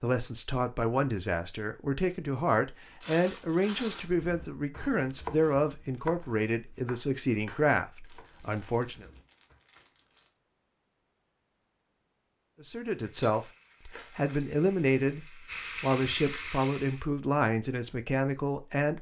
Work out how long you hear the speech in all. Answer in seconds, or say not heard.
15 s.